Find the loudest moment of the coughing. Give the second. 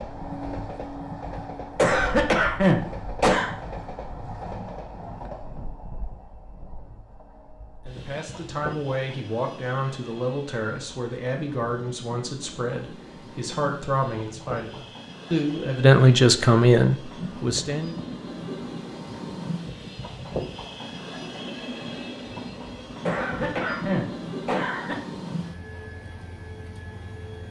3 s.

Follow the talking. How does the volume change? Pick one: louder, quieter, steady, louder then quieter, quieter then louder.
louder.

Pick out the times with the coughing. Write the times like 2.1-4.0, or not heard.
1.8-3.5, 23.1-24.9.